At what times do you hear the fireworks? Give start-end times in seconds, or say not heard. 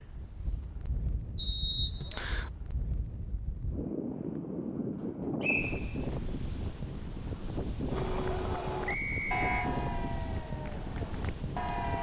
not heard.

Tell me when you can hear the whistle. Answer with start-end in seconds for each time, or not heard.
1.4-2.5, 5.4-5.9, 8.8-9.7.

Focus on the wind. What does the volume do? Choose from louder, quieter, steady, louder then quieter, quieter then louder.
louder.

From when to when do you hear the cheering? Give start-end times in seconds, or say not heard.
7.9-11.9.